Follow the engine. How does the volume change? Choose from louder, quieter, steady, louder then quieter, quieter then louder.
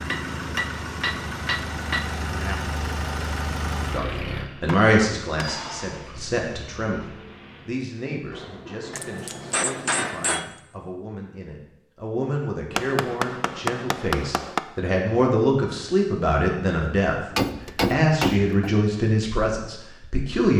quieter.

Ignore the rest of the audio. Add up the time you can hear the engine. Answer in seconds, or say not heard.
9 s.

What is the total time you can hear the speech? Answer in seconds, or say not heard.
16 s.